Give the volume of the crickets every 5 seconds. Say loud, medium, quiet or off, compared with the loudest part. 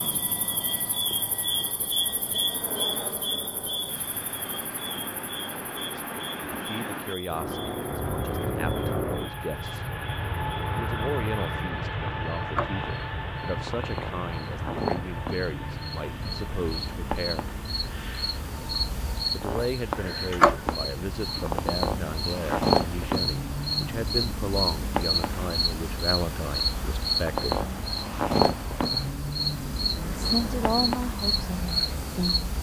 medium, quiet, medium, medium, loud, loud, loud.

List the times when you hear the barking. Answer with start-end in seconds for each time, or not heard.
not heard.